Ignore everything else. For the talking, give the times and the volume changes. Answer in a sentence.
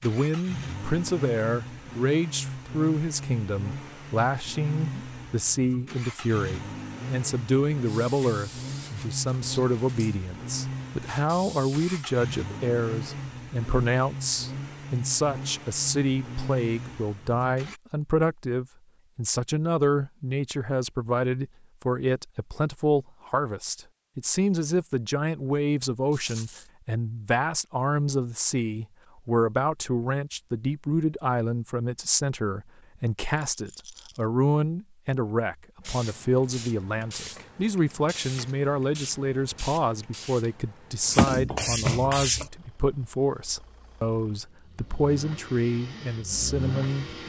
You can hear the talking from 0.0 to 47.2 s, at a steady volume.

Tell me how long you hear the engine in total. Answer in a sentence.
You can hear the engine for 23 seconds altogether.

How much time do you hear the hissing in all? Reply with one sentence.
The hissing can be heard for 11 seconds in total.